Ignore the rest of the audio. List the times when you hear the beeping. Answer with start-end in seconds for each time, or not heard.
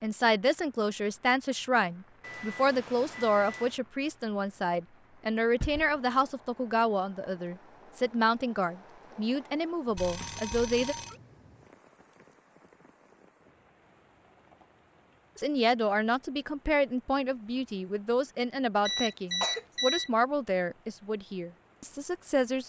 2.2-3.8, 9.9-11.2, 18.9-20.1.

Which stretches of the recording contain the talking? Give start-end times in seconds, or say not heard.
0.0-10.9, 15.3-22.6.